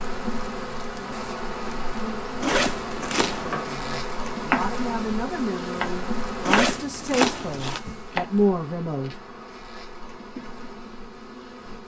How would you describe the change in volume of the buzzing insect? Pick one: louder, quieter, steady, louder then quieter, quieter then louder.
quieter.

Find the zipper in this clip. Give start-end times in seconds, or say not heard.
2.4-3.5, 6.4-7.8.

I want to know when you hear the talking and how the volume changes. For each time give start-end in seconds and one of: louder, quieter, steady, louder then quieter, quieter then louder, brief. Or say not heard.
3.5-9.2 louder.